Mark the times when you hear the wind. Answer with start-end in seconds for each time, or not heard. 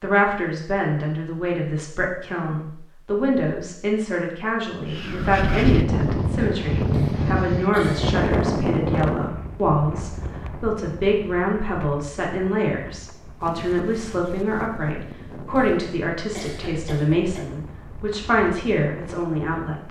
4.9-19.8.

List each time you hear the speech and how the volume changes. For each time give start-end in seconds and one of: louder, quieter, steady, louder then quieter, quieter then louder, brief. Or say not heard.
0.0-19.8 steady.